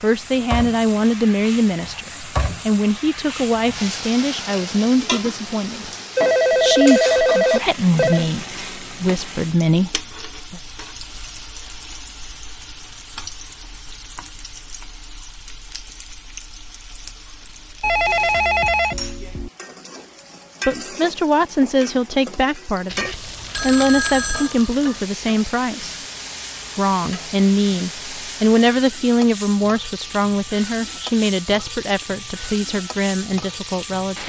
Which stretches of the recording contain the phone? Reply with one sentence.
You can hear the phone from 6.2 to 8.2 s, from 17.8 to 19.5 s and from 22.9 to 24.5 s.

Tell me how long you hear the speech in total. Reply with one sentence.
You can hear the speech for 23 seconds altogether.